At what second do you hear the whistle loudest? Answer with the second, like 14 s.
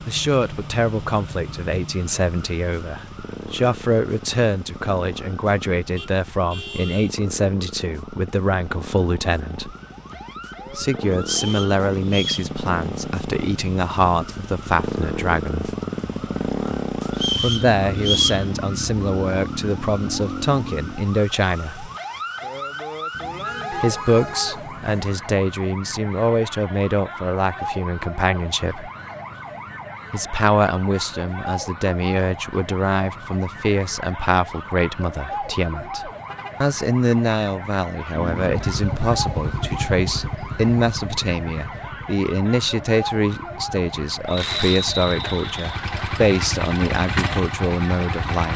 18 s.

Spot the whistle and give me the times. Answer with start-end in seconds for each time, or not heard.
11.2-12.5, 17.1-18.4, 44.2-45.6.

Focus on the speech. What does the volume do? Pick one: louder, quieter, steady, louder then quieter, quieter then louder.
steady.